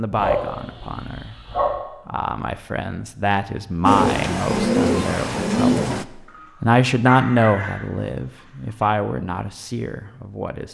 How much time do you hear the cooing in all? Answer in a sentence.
The cooing can be heard for 2 seconds in total.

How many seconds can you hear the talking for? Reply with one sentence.
The talking can be heard for 10 seconds in total.